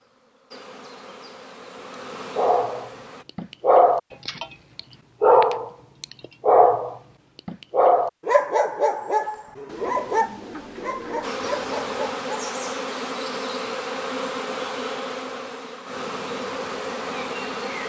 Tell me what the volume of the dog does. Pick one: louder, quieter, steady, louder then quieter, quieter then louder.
quieter.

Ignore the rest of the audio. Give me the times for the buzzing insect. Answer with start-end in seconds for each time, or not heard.
0.0-3.2, 11.2-17.8.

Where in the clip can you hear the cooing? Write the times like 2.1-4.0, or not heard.
9.7-12.2.